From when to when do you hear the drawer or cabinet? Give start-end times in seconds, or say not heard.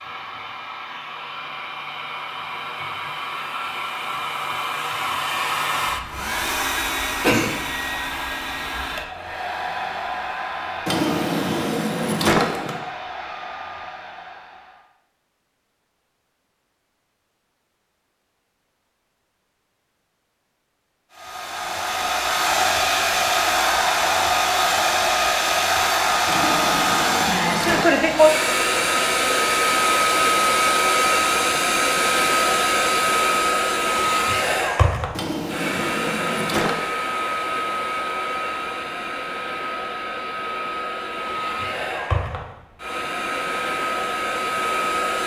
10.8-12.8, 26.2-28.1, 35.1-36.8.